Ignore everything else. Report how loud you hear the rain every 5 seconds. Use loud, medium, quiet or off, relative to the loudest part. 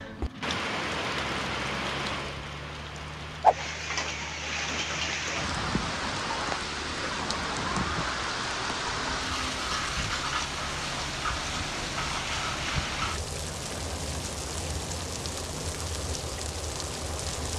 loud, loud, loud, medium.